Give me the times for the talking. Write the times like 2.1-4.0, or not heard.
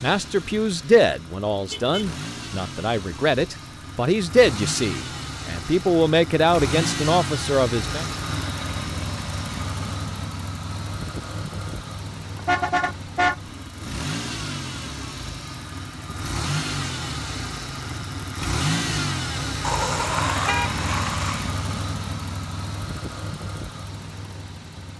0.0-8.1.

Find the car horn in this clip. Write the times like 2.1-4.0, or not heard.
1.7-2.1, 12.3-13.3, 19.6-21.4.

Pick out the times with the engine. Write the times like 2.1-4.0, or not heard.
0.0-24.9.